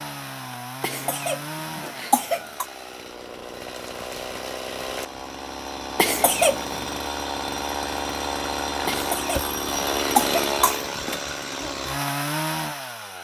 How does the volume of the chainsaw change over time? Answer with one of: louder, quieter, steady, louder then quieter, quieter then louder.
louder.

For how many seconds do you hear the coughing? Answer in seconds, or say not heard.
5 s.